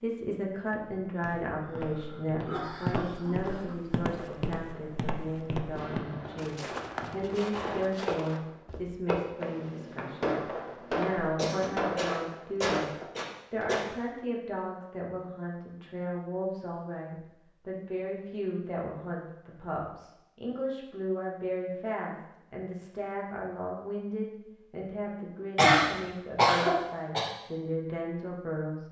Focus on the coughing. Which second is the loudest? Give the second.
26 s.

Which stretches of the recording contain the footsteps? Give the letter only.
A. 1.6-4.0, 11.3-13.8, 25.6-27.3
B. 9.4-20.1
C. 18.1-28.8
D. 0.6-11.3
D.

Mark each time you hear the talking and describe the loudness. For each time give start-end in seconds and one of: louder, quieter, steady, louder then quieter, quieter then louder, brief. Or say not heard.
0.0-28.8 steady.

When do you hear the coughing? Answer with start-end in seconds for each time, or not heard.
1.6-4.0, 11.3-13.8, 25.6-27.3.